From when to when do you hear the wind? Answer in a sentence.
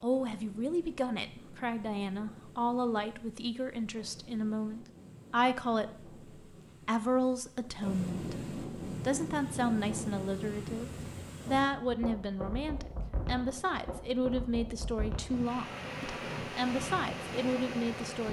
The wind can be heard from 0.0 to 18.2 s.